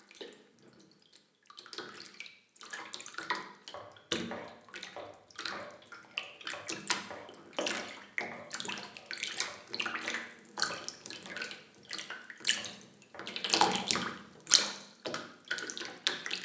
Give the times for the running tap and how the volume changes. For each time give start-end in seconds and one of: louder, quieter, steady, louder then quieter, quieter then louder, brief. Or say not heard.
0.0-16.4 louder.